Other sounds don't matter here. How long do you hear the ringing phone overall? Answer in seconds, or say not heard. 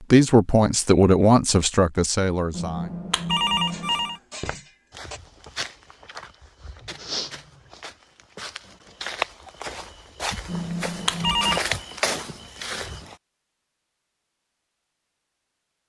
3 s.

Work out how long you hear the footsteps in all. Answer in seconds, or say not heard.
9 s.